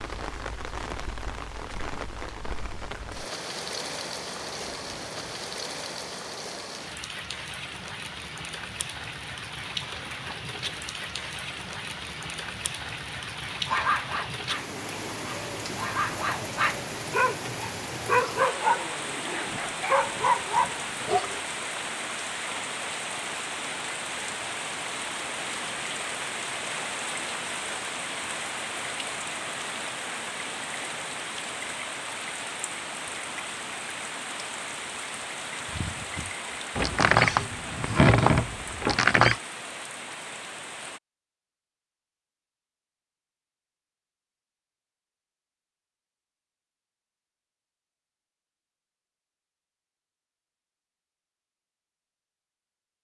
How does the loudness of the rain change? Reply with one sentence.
The volume of the rain stays about the same.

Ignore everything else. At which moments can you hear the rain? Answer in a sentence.
The rain can be heard from 0.0 to 41.0 s.